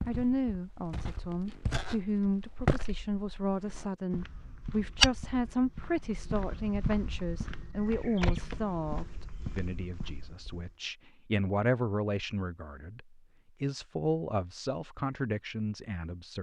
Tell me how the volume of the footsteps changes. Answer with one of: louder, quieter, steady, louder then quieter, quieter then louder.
louder then quieter.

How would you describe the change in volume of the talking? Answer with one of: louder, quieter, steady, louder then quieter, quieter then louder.
steady.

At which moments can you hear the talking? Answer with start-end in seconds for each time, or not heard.
0.1-16.3.